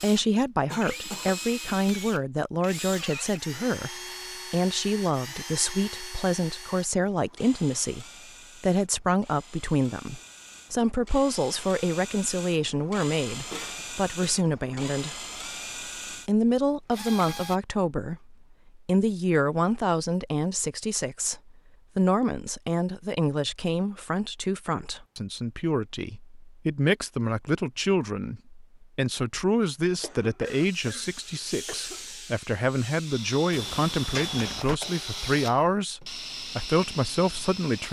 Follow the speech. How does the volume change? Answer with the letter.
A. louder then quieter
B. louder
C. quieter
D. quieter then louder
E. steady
E.